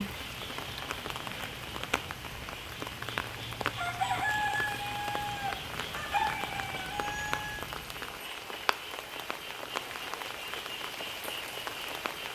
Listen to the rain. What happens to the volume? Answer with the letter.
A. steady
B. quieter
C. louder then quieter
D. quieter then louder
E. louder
A.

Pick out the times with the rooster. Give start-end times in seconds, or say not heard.
3.8-7.6.